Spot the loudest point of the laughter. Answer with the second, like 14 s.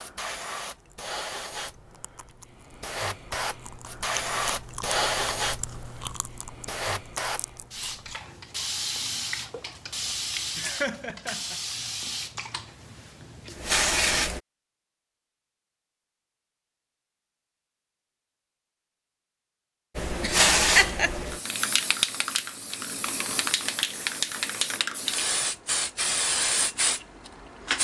21 s.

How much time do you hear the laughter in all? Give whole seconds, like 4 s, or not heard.
2 s.